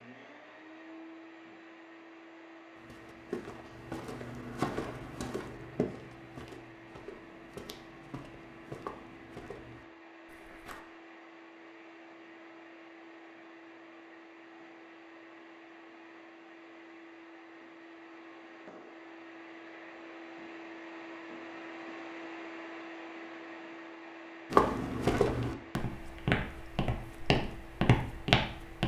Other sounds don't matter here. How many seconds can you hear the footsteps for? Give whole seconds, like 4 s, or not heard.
12 s.